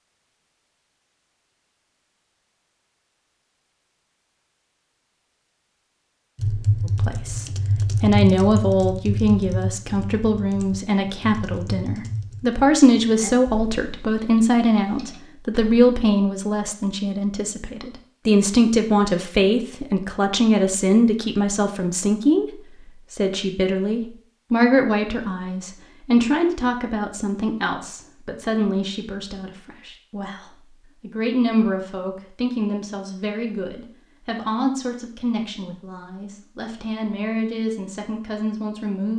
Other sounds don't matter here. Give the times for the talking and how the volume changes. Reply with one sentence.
The talking can be heard from 6.8 to 39.1 s, getting quieter.